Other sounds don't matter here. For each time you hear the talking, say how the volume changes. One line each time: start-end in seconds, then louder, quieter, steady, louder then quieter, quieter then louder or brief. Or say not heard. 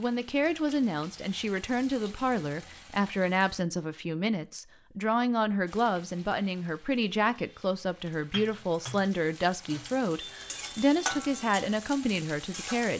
0.0-12.9 steady.